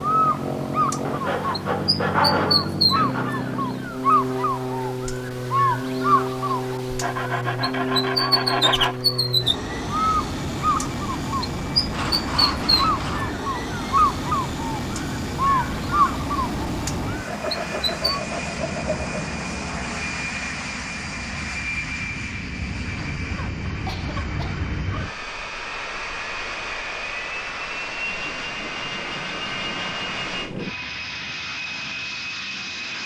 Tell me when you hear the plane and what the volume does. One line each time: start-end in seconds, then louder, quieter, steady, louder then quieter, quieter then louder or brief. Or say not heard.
0.0-33.0 steady.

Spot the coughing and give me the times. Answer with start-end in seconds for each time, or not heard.
23.9-24.6.